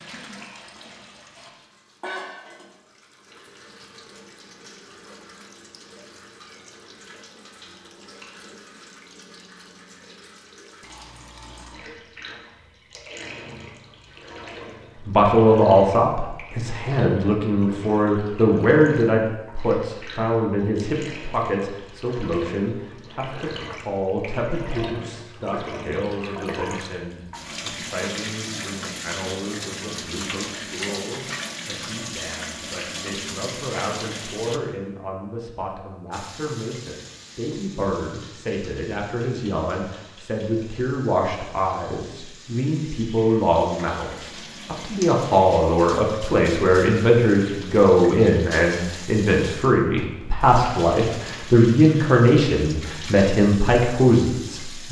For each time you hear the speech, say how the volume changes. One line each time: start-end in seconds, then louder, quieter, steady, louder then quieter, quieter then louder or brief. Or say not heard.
15.1-54.8 quieter then louder.